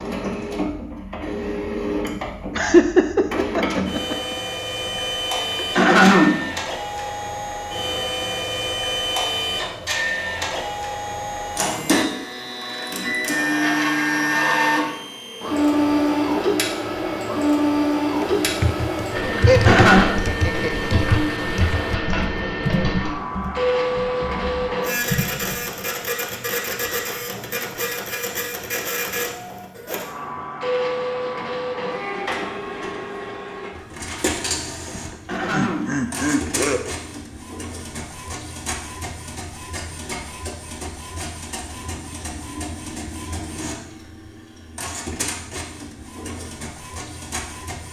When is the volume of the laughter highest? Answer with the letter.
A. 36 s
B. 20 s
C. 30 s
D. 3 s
D.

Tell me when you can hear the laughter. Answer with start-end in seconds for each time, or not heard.
2.5-4.3, 19.4-21.1, 34.9-36.9.